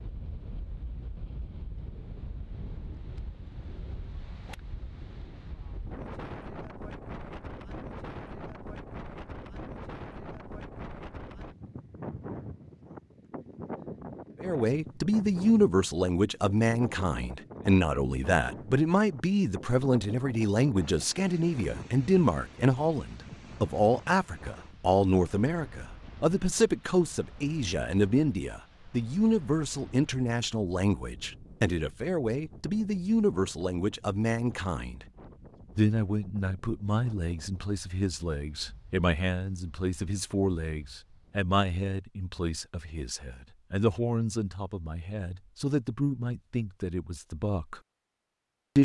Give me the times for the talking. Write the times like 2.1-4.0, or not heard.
14.4-35.0, 35.8-47.8.